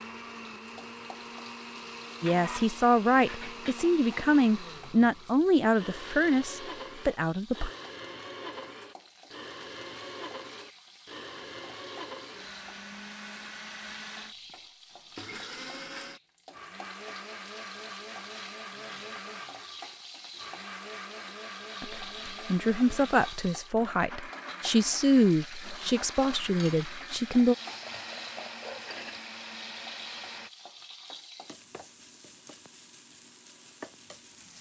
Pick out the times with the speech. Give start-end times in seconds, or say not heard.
2.2-7.7, 21.8-27.6.